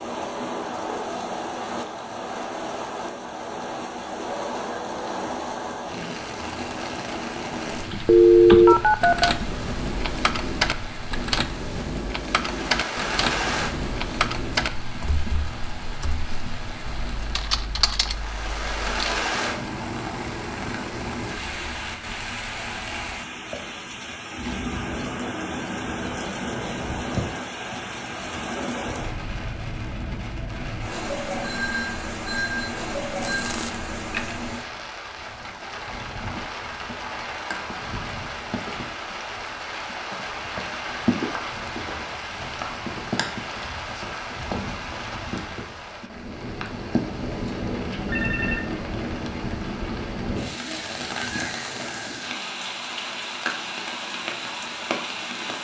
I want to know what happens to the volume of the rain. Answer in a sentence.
The loudness of the rain stays about the same.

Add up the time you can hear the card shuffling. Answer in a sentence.
You can hear the card shuffling for 2 seconds altogether.